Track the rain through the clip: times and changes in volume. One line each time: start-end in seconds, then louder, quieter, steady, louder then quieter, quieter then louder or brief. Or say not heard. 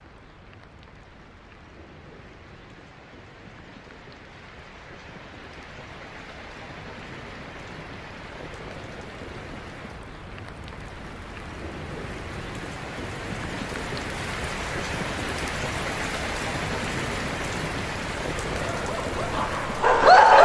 0.0-20.4 louder.